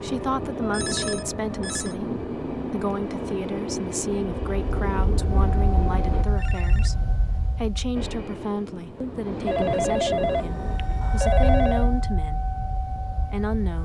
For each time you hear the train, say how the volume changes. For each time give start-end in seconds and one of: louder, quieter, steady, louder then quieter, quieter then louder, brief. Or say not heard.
0.0-6.2 steady
8.0-10.8 brief.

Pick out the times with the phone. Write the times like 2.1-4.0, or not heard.
0.6-1.9, 6.3-7.0, 9.4-11.9.